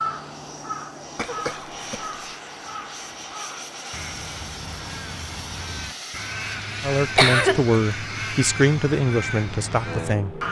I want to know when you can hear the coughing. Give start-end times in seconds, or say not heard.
1.1-2.4, 7.2-7.8.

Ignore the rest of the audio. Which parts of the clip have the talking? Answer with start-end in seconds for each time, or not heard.
6.8-10.4.